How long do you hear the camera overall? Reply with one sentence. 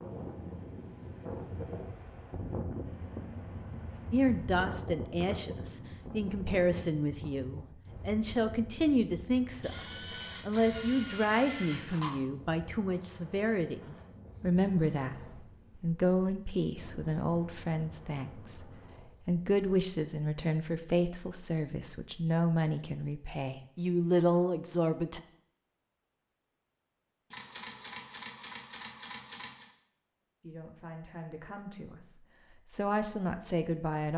The camera can be heard for 5 seconds in total.